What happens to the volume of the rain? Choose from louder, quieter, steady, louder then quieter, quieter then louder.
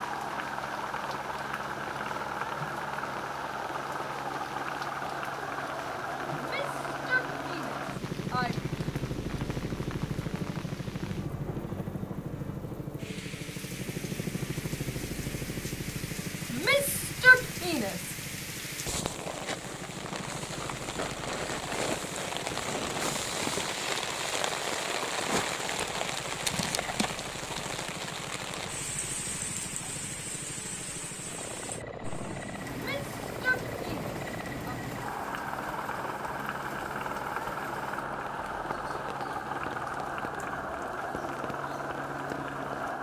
louder then quieter.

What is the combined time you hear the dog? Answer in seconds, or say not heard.
not heard.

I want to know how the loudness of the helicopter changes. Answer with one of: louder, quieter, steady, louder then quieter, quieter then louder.
quieter then louder.